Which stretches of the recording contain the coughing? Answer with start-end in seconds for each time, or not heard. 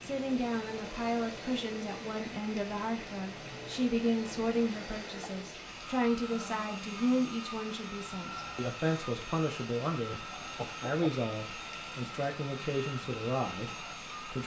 10.1-11.1.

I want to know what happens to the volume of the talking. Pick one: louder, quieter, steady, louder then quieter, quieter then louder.
steady.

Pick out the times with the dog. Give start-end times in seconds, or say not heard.
not heard.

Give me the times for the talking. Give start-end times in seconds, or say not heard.
0.0-14.4.